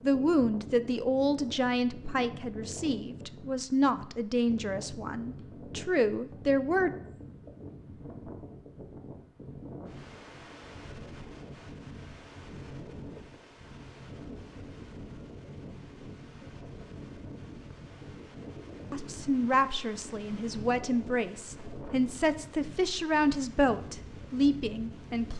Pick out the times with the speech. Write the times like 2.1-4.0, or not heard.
0.0-6.9, 18.9-25.3.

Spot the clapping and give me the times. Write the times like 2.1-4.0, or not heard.
not heard.